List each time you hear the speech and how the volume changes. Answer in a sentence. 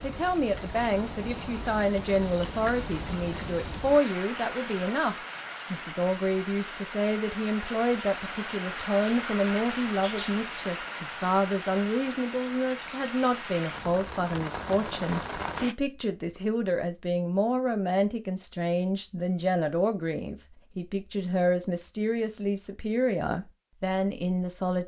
You can hear the speech from 0.0 to 24.8 s, at a steady volume.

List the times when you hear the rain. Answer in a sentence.
You can hear the rain from 0.0 to 15.8 s.